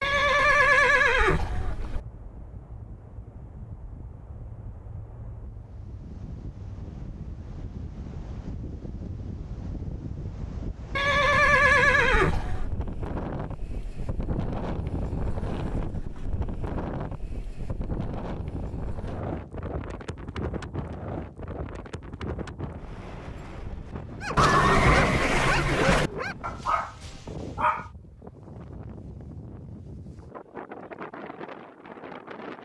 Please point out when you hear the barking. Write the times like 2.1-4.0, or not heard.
24.2-27.9.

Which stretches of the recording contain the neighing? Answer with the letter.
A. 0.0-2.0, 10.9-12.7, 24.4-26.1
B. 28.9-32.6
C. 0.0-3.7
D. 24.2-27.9
A.